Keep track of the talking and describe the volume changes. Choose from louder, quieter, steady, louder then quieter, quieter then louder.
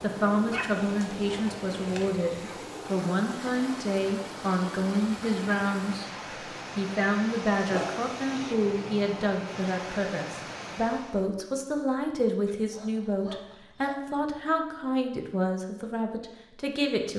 steady.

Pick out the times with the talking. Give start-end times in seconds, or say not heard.
0.0-6.1, 6.8-17.1.